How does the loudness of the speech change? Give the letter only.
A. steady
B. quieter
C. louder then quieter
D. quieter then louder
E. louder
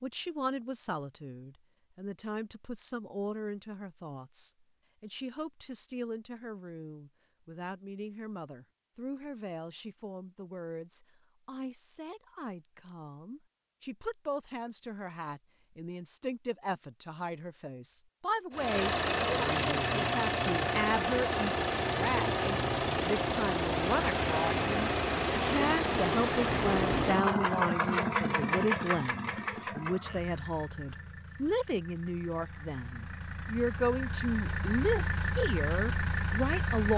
E.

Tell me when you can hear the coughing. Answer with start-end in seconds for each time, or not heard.
not heard.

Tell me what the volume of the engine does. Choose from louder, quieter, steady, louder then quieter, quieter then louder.
quieter then louder.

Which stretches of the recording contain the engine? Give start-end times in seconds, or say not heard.
18.5-36.9.